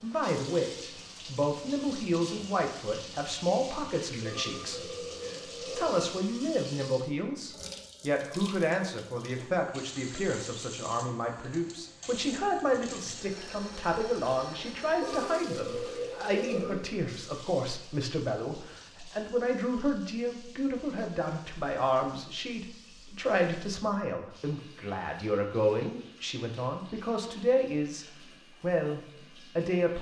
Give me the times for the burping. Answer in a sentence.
You can hear the burping from 4.2 to 6.1 s and from 15.0 to 16.9 s.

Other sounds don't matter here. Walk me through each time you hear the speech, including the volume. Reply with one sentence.
You can hear the speech from 0.0 to 29.9 s, at a steady volume.